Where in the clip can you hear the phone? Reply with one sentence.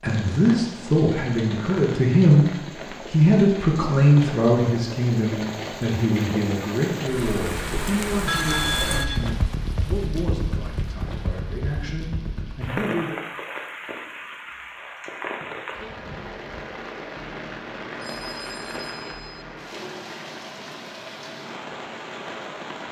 The phone can be heard from 8.2 to 9.3 s and from 17.9 to 19.4 s.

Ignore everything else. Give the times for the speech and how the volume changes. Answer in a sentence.
You can hear the speech briefly from 0.0 to 2.5 s; and from 3.1 to 13.2 s, getting quieter.